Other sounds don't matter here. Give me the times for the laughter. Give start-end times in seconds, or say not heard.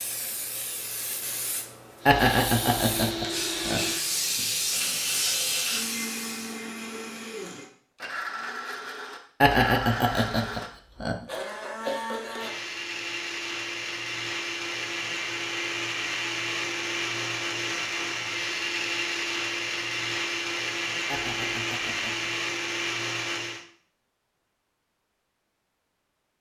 2.0-3.8, 9.4-11.2, 21.1-22.3.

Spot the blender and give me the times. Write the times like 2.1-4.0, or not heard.
2.0-23.6.